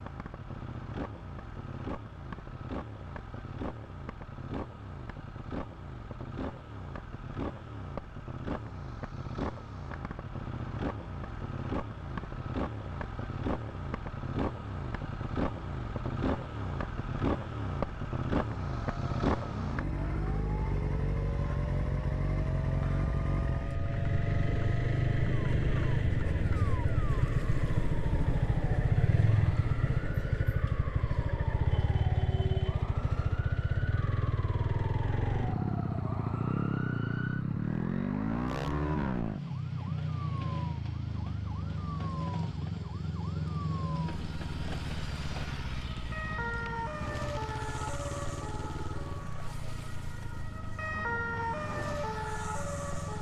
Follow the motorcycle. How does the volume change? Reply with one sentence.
The volume of the motorcycle goes up, then down.